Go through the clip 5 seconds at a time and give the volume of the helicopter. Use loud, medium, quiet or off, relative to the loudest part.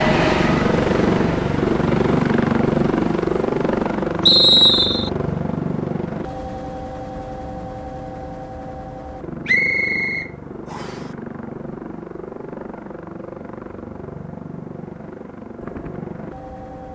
loud, medium, quiet, quiet.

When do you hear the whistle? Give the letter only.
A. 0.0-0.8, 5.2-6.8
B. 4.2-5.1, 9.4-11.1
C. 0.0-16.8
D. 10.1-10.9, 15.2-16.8
B.